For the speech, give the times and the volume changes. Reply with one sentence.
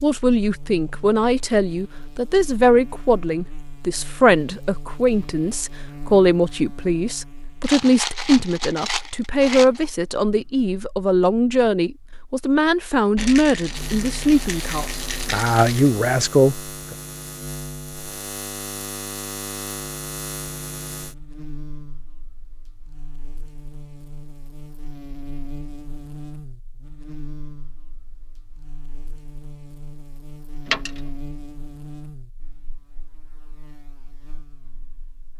You can hear the speech from 0.0 to 16.9 s, at a steady volume.